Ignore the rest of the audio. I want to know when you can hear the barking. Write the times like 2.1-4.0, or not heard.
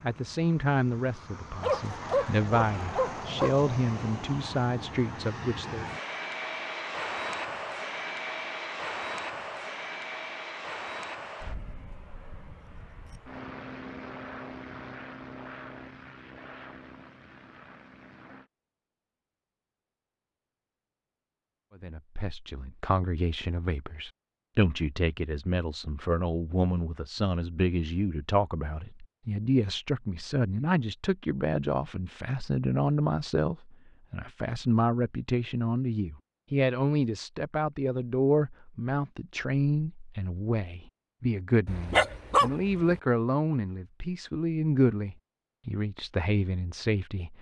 1.6-3.5, 41.6-43.0.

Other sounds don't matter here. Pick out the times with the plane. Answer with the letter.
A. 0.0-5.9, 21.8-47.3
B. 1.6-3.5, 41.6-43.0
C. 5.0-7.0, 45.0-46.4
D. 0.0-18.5
D.